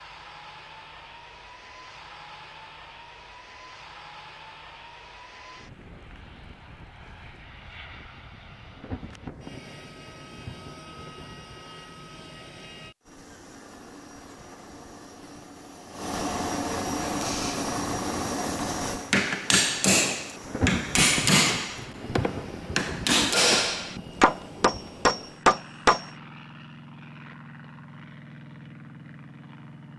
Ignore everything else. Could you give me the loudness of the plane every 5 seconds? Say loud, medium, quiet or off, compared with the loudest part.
quiet, quiet, quiet, loud, quiet, quiet.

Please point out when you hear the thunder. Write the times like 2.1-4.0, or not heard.
8.7-11.7, 20.4-24.9.